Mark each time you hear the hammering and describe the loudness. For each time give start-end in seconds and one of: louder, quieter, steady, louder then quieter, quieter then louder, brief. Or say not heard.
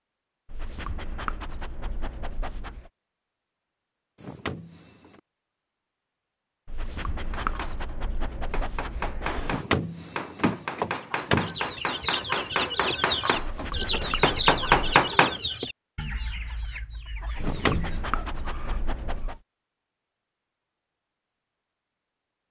7.3-15.3 louder.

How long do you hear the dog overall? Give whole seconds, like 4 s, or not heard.
9 s.